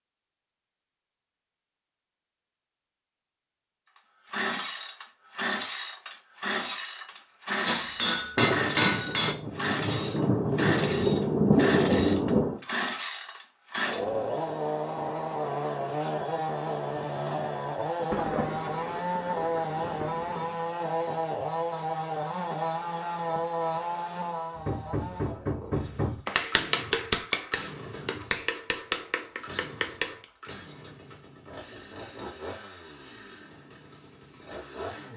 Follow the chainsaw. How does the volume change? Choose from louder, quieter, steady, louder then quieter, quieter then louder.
quieter.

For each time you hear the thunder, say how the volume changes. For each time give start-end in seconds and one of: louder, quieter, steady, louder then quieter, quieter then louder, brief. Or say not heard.
8.3-12.6 louder
18.1-20.6 brief.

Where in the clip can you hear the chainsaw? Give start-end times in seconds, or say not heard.
4.0-35.1.